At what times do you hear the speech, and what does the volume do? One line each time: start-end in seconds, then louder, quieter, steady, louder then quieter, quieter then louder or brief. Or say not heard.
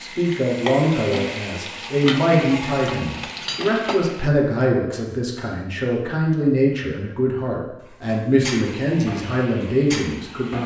0.0-10.6 steady.